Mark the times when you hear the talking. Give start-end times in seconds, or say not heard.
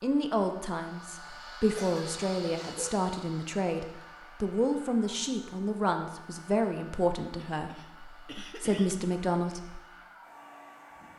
0.0-9.8.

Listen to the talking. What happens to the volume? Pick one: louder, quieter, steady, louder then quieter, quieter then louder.
steady.